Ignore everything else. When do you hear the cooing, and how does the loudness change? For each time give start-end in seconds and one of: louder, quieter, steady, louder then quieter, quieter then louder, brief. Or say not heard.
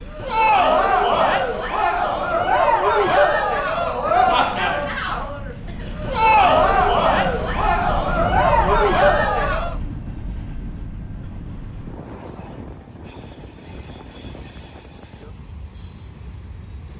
not heard.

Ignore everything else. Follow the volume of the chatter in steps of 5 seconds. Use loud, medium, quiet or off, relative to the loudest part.
loud, loud, off, off.